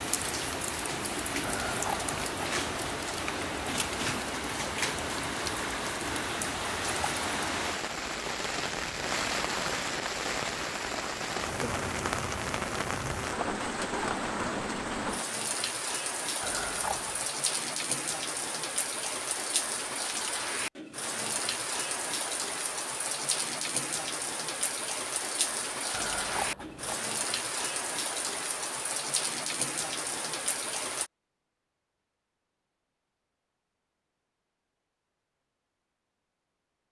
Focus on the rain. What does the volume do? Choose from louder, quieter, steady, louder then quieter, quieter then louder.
steady.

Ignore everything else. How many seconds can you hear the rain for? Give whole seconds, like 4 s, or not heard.
31 s.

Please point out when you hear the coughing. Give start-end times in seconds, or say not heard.
not heard.